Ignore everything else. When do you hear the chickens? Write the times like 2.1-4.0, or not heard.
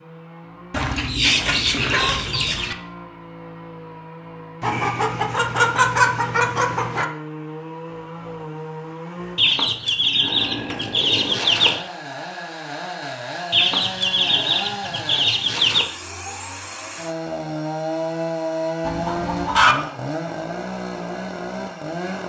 0.7-2.8, 4.6-7.0, 9.3-11.8, 13.5-15.8, 18.9-19.8.